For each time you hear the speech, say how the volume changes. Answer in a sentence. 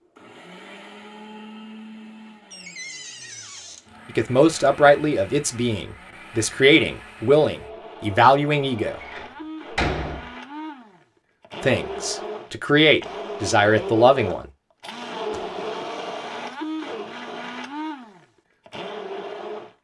The speech can be heard from 4.1 to 9.0 s, getting quieter then louder; and briefly from 11.6 to 14.4 s.